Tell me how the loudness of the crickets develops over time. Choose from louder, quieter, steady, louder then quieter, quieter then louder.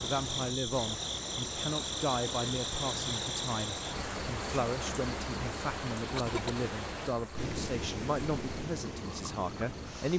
quieter.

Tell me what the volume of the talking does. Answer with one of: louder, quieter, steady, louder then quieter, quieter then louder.
steady.